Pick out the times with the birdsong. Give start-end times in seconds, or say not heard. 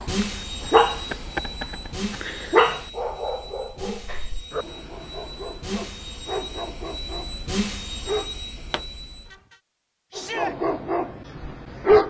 not heard.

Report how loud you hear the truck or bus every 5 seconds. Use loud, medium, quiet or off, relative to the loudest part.
loud, loud, off.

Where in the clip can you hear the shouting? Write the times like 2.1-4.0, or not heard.
10.1-10.6.